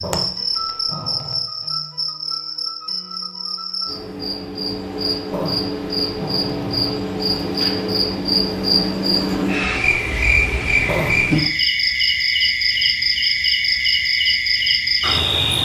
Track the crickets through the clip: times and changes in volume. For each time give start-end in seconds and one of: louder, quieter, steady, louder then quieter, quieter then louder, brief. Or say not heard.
0.0-15.6 louder.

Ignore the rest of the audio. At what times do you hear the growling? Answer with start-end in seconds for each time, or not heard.
0.0-1.4, 5.3-7.0, 10.8-11.2.